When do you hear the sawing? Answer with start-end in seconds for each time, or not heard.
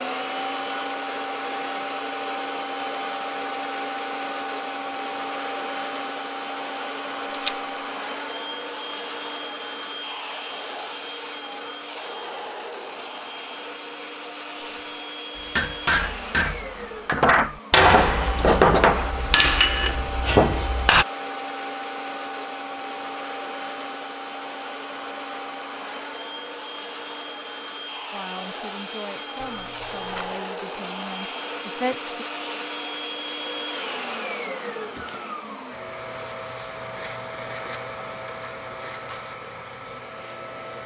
not heard.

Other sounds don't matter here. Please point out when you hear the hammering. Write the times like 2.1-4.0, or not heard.
15.3-21.1.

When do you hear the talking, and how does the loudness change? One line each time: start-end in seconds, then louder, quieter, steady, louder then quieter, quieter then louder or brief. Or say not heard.
28.1-32.1 steady.